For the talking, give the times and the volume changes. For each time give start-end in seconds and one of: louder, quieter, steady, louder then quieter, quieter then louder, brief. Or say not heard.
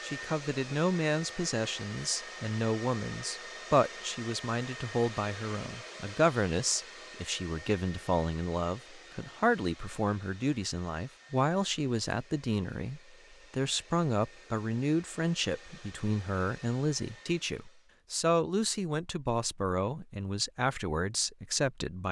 0.0-22.0 steady.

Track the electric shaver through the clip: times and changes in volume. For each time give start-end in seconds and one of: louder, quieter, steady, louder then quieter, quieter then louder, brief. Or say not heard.
not heard.